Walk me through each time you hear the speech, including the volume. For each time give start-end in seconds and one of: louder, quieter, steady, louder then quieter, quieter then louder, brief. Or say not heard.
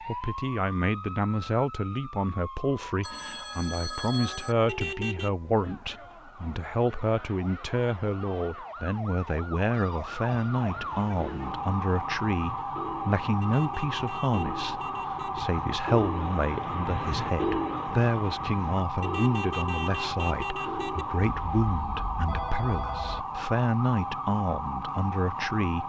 0.1-25.8 steady.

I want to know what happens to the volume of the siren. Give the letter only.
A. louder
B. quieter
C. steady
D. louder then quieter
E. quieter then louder
A.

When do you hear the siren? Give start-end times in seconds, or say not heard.
0.0-25.8.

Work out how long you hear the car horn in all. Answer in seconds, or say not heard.
5 s.